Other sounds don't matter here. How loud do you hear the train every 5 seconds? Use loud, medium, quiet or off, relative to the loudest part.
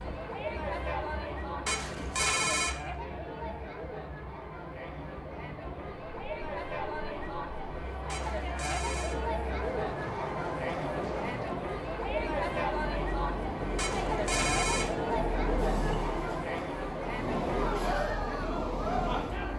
quiet, medium, loud, loud.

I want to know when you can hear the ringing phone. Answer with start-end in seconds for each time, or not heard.
1.6-2.8, 8.1-9.2, 13.8-14.9.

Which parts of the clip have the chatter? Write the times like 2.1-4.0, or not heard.
0.0-19.5.